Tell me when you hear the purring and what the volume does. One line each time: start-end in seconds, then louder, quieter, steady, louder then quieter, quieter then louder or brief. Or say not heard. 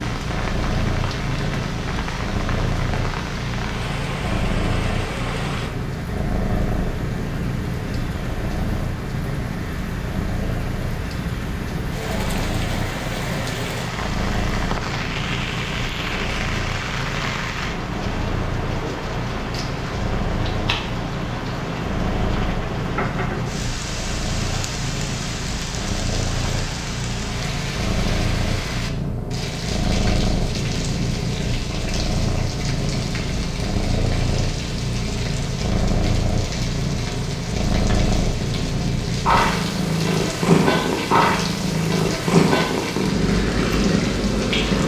0.0-44.8 louder.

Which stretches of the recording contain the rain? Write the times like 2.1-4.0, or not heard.
0.0-44.8.